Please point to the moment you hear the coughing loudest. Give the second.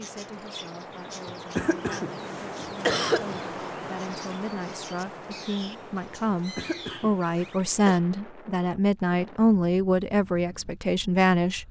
3 s.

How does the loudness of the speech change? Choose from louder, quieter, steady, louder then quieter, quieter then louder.
louder.